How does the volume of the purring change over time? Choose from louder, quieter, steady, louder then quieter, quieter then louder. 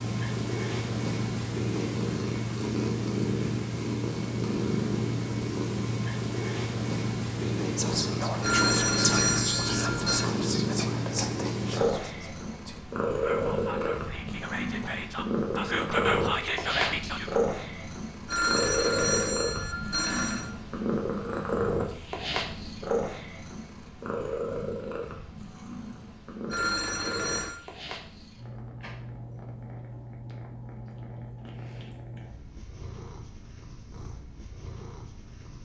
quieter.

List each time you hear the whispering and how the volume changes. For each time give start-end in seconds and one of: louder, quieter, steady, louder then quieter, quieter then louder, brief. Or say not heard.
7.4-17.4 quieter then louder.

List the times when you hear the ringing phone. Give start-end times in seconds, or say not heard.
8.4-10.3, 18.2-20.5, 26.5-27.6.